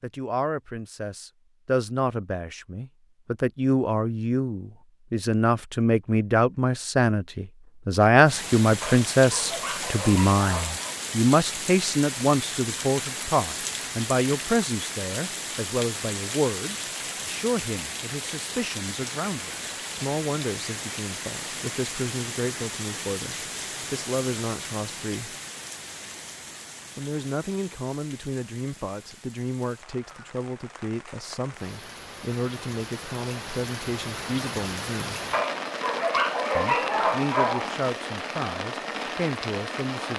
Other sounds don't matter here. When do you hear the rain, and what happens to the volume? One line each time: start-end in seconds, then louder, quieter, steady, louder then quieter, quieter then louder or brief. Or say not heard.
8.2-40.1 quieter then louder.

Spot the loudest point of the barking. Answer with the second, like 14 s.
37 s.